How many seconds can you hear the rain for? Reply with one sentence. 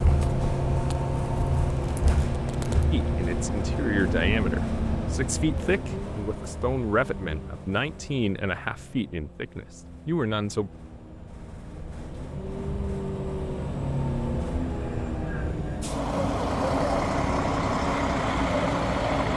You can't hear the rain here.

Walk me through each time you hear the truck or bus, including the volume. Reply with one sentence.
You can hear the truck or bus from 0.0 to 19.3 s, getting quieter then louder.